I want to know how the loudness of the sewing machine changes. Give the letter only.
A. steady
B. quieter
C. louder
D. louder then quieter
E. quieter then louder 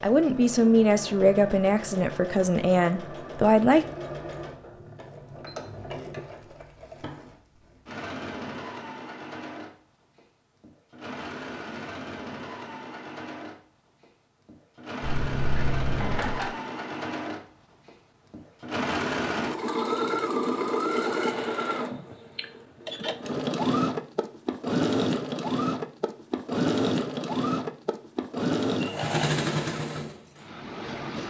C.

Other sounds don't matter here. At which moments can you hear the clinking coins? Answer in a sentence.
The clinking coins can be heard from 15.0 to 16.5 s.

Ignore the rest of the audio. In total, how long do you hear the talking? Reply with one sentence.
The talking can be heard for 4 seconds in total.